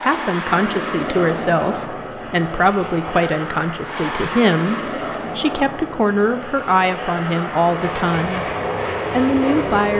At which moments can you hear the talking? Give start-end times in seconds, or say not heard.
0.0-8.4, 9.1-9.9.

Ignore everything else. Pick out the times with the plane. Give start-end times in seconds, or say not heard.
0.0-9.9.